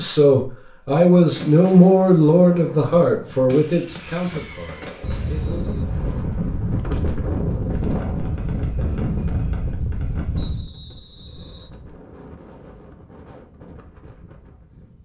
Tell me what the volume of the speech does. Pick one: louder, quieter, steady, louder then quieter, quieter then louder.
quieter.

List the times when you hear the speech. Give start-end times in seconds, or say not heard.
0.0-5.6.